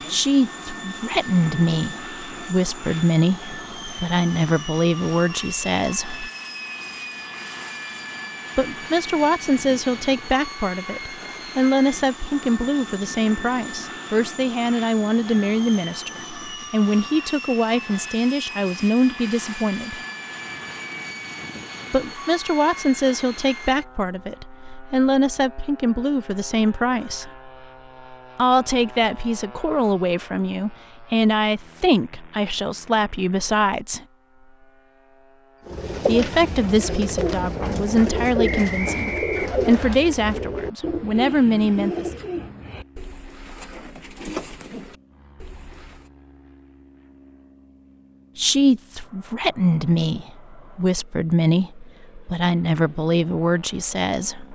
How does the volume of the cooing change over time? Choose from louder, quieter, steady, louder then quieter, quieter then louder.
quieter.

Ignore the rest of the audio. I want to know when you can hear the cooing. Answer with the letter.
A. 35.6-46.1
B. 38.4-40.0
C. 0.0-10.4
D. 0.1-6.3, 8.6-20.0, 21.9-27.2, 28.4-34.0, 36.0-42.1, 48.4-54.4
A.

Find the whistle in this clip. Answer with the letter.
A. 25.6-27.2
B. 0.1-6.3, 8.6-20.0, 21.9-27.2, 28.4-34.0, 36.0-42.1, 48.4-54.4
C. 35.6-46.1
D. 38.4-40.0
D.